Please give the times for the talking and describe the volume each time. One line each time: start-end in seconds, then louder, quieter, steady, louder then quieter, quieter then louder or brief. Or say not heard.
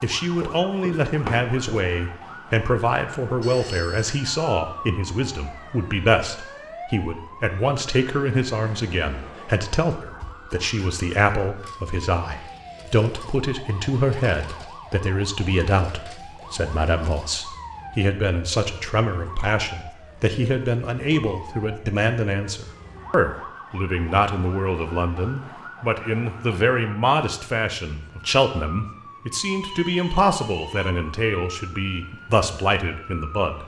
0.0-33.6 steady.